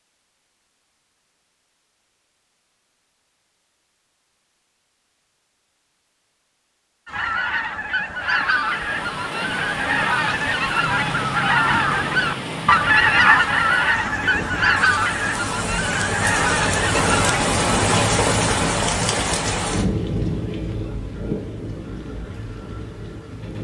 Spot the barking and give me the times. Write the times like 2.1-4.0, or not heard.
not heard.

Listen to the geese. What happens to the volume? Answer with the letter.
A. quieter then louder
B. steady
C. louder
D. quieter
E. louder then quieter
E.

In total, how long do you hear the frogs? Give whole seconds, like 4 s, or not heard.
not heard.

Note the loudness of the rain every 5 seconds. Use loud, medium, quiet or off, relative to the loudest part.
off, medium, medium, loud, medium.